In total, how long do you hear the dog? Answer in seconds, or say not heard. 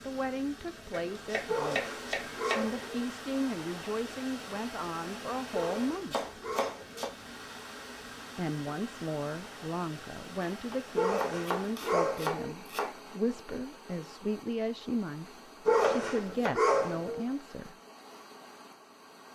6 s.